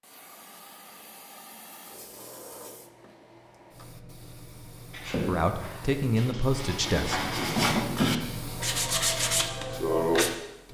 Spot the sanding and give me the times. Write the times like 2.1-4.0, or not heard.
4.9-10.3.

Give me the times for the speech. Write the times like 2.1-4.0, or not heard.
5.2-7.2.